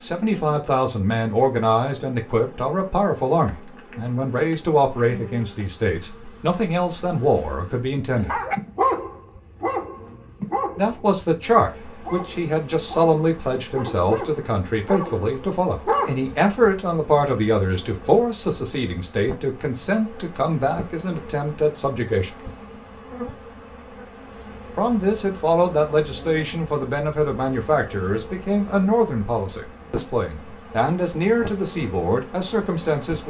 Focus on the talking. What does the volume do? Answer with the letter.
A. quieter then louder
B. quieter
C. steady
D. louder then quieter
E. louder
C.